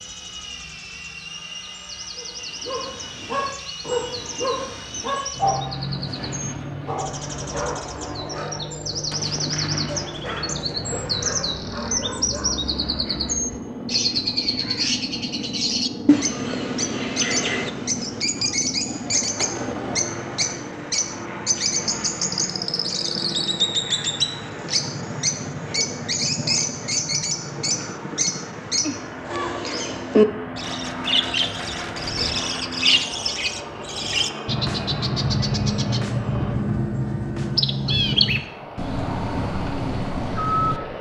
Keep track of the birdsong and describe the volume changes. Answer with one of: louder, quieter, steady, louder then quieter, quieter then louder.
louder.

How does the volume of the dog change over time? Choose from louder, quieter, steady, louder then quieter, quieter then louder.
quieter.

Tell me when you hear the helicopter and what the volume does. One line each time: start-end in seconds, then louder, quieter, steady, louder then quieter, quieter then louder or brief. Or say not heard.
0.0-40.9 steady.